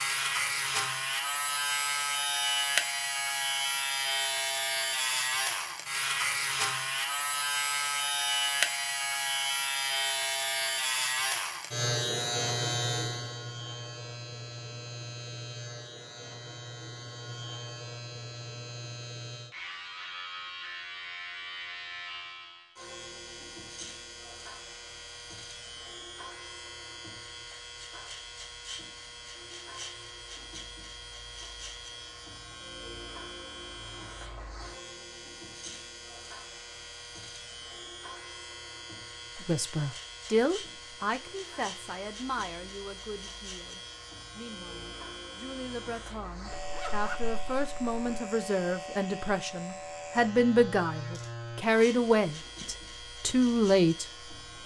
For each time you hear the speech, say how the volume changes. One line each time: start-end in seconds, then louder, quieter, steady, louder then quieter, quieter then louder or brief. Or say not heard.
39.4-54.0 quieter then louder.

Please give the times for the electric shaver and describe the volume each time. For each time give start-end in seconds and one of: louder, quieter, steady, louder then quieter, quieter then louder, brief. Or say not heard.
0.0-54.6 quieter.